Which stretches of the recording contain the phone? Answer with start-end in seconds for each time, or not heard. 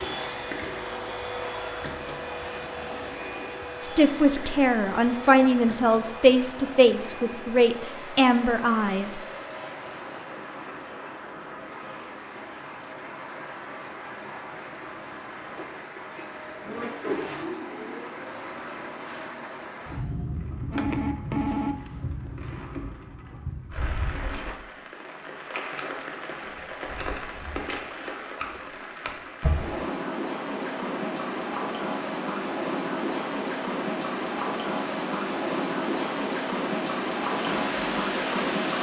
0.7-1.8, 20.7-21.9.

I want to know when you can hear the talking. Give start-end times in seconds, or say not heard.
3.8-9.2.